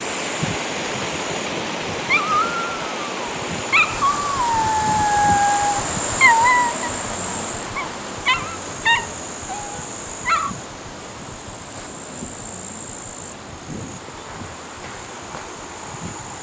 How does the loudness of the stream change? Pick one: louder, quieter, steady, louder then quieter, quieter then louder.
quieter.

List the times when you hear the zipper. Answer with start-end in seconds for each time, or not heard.
not heard.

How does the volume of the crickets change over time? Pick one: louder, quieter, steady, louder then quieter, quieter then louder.
louder then quieter.